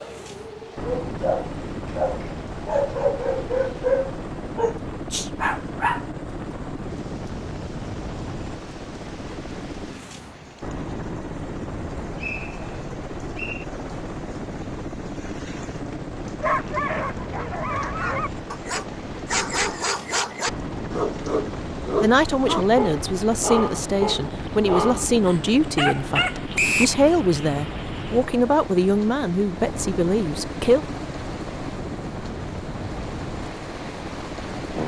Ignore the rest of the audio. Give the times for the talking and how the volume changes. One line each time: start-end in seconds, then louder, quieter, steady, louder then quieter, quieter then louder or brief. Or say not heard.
22.0-30.9 steady.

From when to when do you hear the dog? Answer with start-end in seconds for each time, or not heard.
0.0-6.6, 16.4-26.4.